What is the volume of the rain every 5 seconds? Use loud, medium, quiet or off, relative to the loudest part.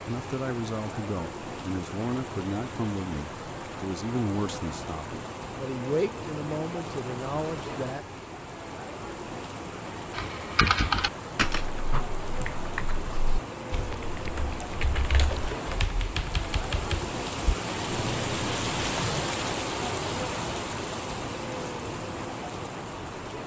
medium, medium, medium, loud, loud.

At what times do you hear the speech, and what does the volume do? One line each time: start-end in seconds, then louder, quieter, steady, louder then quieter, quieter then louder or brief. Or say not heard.
0.0-8.1 steady.